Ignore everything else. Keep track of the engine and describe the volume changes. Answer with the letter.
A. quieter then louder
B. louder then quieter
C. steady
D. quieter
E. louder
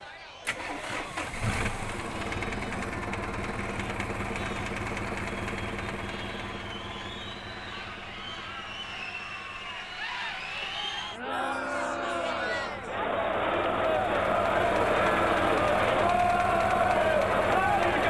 A.